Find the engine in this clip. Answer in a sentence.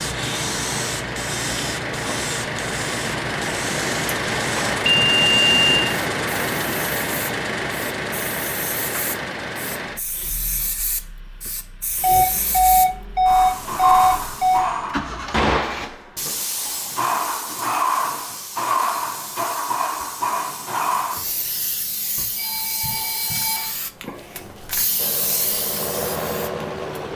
You can hear the engine from 0.0 to 15.9 s and from 24.9 to 27.1 s.